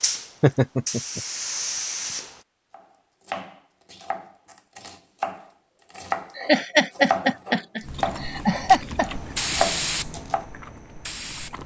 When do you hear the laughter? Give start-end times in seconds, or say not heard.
0.4-1.2, 6.3-9.1.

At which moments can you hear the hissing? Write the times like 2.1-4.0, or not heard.
0.0-2.4, 9.1-11.6.